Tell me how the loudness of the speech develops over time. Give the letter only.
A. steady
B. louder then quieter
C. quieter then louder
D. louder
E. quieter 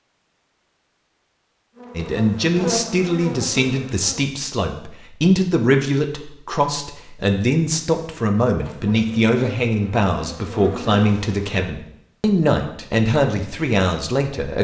A.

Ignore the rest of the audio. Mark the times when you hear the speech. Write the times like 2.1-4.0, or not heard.
1.9-14.5.